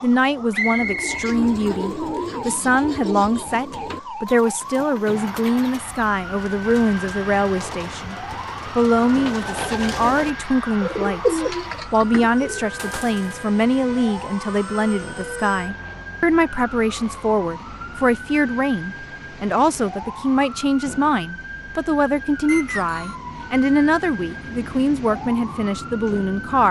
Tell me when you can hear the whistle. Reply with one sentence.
You can hear the whistle from 0.5 to 1.3 s and from 22.4 to 23.2 s.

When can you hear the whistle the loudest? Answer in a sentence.
The loudest moment of the whistle is at 1 second.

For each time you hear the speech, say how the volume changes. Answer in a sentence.
The speech can be heard from 0.0 to 26.6 s, at a steady volume.